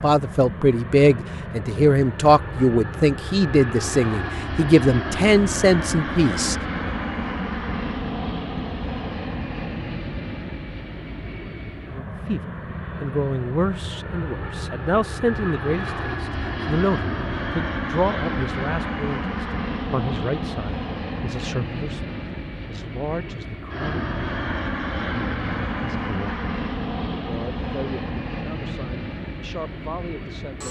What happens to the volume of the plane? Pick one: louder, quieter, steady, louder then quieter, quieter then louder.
steady.